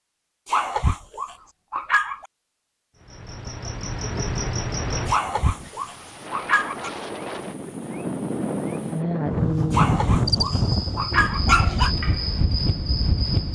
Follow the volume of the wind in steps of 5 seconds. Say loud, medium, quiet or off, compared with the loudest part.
off, loud, loud.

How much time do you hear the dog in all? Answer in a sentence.
You can hear the dog for 6 seconds altogether.